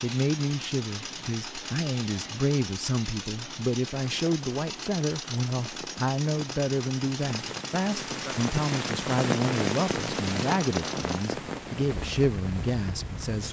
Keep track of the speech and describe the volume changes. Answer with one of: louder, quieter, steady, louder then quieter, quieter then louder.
steady.